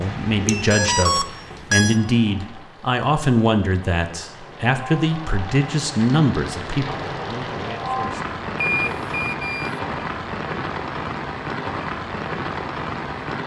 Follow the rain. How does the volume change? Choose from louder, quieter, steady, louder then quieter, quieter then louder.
louder.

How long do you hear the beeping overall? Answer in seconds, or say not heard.
3 s.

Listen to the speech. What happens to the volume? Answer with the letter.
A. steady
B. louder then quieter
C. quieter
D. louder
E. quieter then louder
C.